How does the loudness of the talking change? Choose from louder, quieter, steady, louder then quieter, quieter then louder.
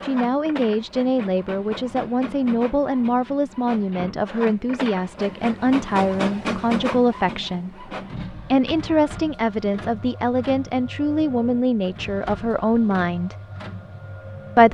steady.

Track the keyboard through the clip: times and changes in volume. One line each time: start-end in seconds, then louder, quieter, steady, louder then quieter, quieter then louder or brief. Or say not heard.
not heard.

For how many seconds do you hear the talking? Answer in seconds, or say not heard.
13 s.